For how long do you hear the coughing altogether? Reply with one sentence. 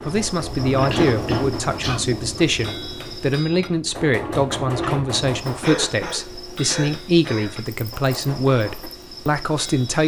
You can hear the coughing for 3 seconds altogether.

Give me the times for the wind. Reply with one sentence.
You can hear the wind from 0.0 to 5.6 s.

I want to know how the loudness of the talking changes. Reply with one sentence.
The volume of the talking stays about the same.